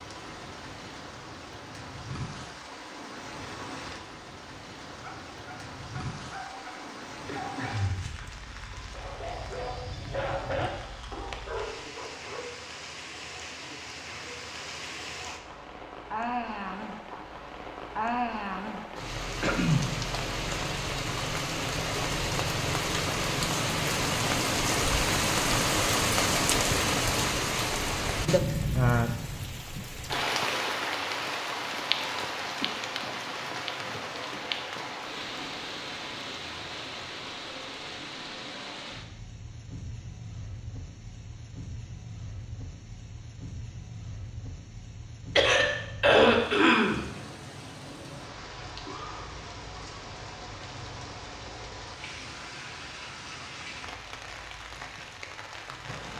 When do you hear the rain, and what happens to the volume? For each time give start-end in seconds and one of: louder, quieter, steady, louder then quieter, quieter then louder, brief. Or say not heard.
0.0-56.1 louder then quieter.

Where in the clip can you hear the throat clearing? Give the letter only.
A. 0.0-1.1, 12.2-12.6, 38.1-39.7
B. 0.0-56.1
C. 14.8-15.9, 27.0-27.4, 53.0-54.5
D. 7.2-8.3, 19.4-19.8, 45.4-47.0
D.